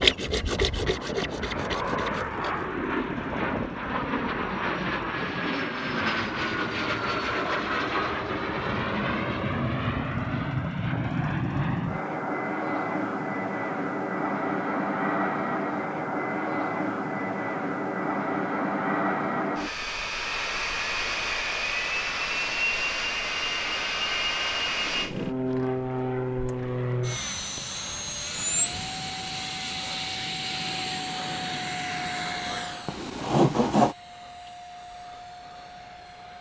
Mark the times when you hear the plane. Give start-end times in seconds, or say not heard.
0.0-36.3.